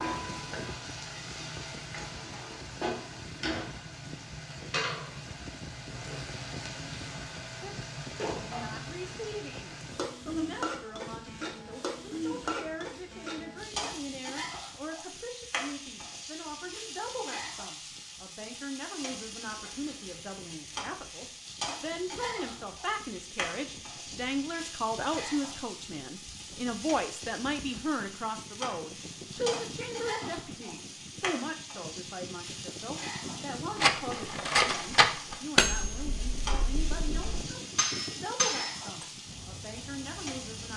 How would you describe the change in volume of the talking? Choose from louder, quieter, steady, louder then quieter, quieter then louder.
louder then quieter.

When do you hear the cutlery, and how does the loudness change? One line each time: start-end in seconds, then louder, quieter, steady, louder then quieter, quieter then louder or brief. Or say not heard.
33.8-39.0 quieter then louder.